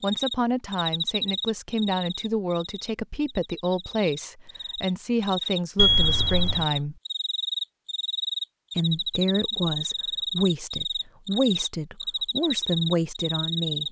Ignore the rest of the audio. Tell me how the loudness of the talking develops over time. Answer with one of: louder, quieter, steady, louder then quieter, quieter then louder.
steady.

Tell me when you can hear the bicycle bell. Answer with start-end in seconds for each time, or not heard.
5.8-6.7.